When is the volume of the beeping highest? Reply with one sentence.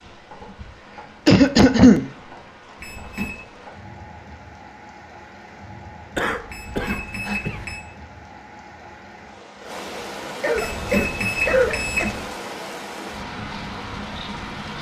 The volume of the beeping peaks at 11 seconds.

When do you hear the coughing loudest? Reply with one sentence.
The volume of the coughing peaks at 2 seconds.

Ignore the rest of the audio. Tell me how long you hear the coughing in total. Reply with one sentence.
The coughing can be heard for 4 seconds in total.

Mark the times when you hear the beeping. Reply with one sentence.
You can hear the beeping from 2.8 to 3.4 s, from 6.5 to 7.8 s and from 10.6 to 12.2 s.